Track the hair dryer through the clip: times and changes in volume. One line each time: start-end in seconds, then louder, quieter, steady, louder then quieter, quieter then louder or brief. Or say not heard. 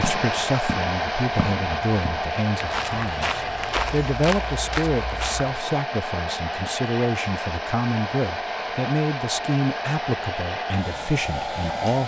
0.0-12.0 steady.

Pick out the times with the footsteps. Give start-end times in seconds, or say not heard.
0.0-5.6.